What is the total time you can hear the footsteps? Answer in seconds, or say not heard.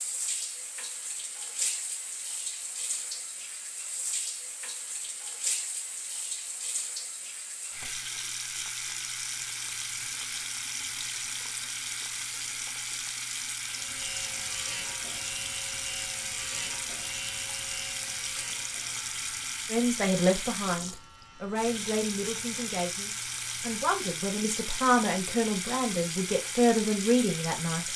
not heard.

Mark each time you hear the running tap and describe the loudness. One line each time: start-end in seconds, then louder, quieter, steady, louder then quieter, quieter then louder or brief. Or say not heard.
0.0-27.9 steady.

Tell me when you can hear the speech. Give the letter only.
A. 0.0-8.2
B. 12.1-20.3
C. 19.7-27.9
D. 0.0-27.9
C.